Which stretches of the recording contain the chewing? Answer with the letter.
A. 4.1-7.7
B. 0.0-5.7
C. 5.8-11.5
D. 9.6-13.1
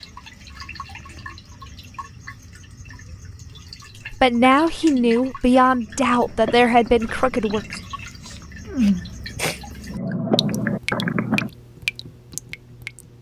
C.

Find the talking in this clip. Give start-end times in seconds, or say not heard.
4.1-7.7.